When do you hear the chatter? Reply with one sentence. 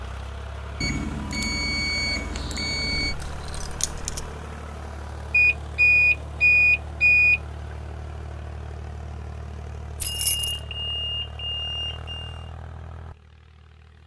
You can't hear the chatter here.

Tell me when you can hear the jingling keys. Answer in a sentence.
The jingling keys can be heard from 3.0 to 4.3 s and from 10.0 to 10.6 s.